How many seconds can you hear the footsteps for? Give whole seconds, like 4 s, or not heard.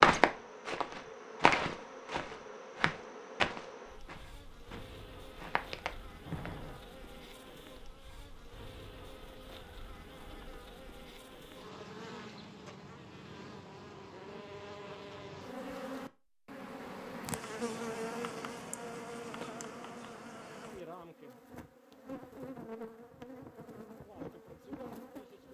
7 s.